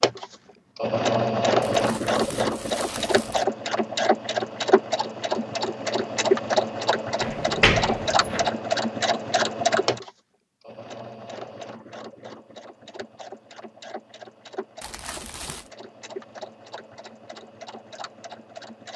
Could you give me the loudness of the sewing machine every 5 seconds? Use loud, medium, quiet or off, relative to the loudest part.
loud, loud, quiet, quiet.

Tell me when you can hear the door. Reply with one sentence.
You can hear the door from 7.2 to 8.5 s.